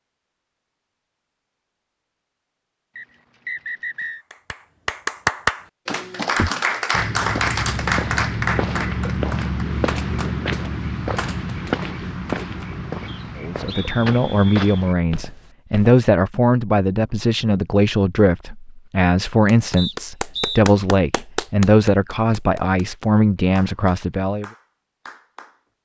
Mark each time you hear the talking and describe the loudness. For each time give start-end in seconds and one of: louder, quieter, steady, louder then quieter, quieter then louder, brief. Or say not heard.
13.3-24.4 steady.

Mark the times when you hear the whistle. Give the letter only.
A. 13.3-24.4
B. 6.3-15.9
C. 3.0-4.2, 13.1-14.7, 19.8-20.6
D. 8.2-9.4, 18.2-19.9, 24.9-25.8
C.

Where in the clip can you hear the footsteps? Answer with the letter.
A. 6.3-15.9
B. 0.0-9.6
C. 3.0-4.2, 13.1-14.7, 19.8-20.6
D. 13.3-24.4
A.